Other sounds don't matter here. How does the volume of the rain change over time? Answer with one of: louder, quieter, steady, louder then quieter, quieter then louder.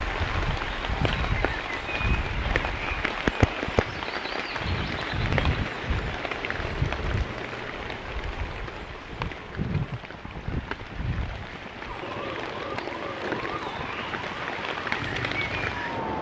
quieter then louder.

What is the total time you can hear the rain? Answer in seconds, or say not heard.
16 s.